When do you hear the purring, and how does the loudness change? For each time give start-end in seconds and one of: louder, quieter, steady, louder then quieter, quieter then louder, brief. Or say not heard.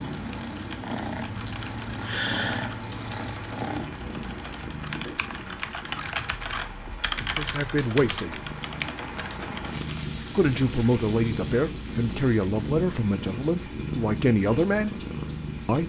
0.0-15.8 quieter then louder.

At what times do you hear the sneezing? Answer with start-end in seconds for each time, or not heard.
1.9-2.8.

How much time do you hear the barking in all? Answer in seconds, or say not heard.
not heard.